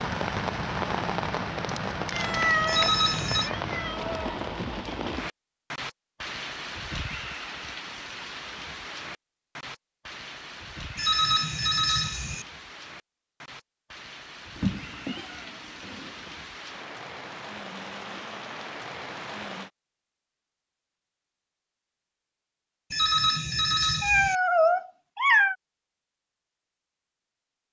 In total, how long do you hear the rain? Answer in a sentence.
You can hear the rain for 20 seconds altogether.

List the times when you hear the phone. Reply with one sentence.
The phone can be heard from 2.6 to 3.5 s, from 10.9 to 12.4 s and from 22.9 to 24.4 s.